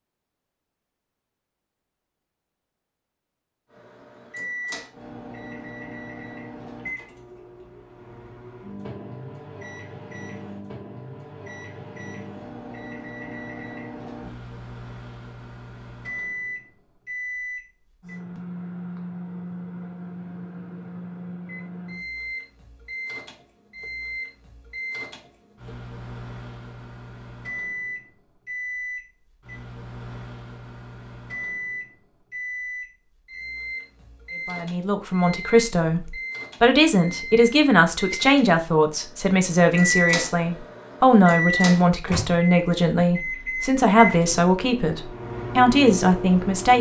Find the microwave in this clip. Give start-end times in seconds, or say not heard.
3.7-46.7.